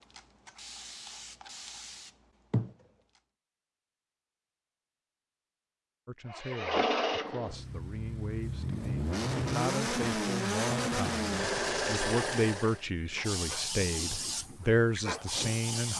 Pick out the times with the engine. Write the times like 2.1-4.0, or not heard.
6.2-12.8.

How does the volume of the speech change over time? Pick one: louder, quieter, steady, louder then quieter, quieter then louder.
louder.